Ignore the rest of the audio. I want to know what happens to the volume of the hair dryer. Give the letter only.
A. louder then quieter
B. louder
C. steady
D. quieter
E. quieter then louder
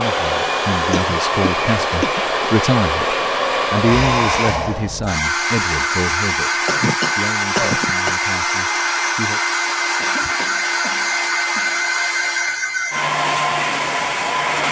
C.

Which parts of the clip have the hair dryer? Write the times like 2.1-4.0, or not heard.
0.0-14.6.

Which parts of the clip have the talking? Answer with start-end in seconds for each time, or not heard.
0.0-9.4.